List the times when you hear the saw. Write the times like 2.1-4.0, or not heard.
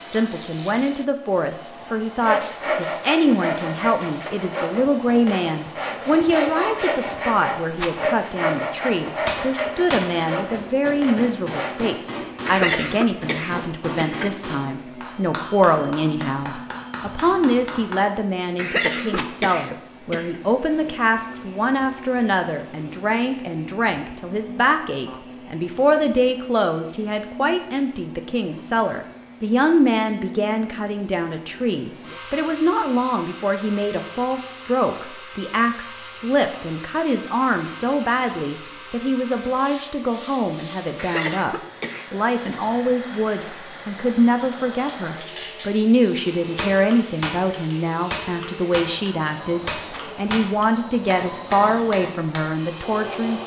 2.2-12.0.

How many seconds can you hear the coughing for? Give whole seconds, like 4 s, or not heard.
5 s.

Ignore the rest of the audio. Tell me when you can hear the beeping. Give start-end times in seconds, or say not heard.
not heard.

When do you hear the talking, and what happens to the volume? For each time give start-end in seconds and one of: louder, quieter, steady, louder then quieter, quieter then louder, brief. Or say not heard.
0.0-53.4 steady.